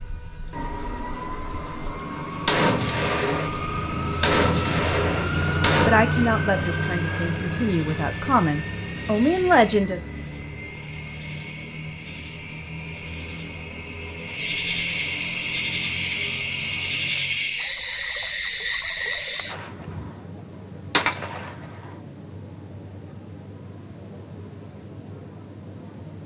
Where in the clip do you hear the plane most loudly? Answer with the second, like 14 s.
6 s.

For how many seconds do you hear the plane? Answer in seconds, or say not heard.
18 s.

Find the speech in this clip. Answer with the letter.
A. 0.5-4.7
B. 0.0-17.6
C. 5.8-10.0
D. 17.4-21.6
C.